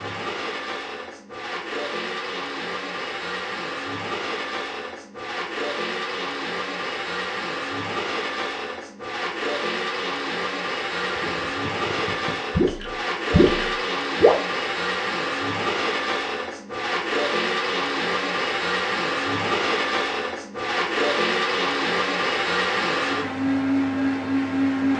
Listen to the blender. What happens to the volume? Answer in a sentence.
The loudness of the blender goes up.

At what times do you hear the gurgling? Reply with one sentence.
You can hear the gurgling from 10.9 to 14.3 s.